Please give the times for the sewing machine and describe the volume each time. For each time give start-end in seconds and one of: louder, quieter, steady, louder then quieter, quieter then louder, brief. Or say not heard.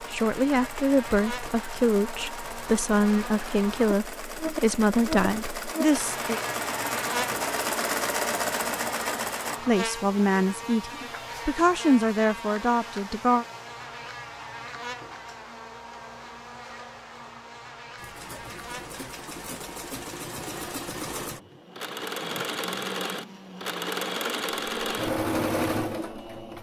0.0-9.6 louder
17.9-26.5 louder.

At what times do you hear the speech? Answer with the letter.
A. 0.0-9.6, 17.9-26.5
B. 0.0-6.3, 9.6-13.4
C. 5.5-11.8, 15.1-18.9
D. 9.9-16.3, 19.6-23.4
B.